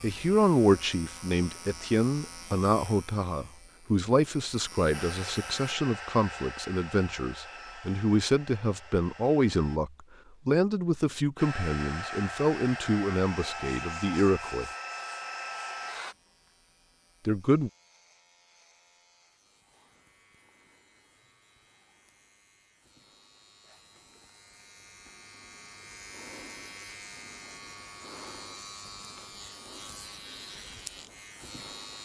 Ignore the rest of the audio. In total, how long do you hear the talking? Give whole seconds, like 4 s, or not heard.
15 s.